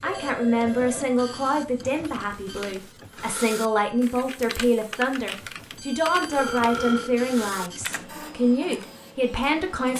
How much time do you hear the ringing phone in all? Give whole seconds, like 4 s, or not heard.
2 s.